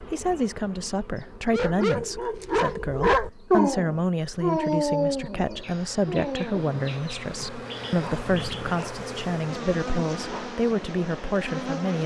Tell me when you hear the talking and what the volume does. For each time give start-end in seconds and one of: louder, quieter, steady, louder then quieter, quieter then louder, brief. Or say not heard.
0.1-12.0 steady.